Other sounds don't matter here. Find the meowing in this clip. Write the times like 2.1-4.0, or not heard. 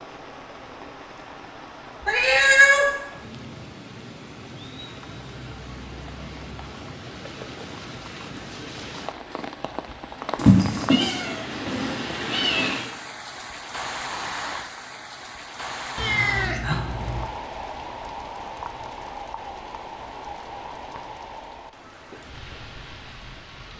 2.0-2.9, 10.4-12.8, 15.9-17.2.